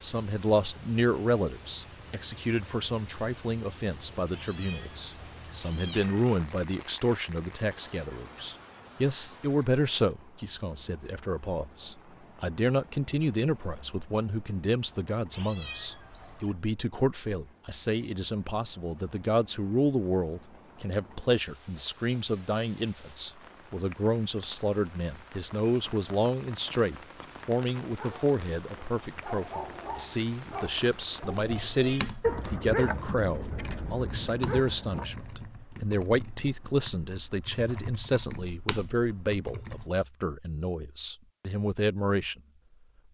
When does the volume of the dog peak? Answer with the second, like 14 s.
32 s.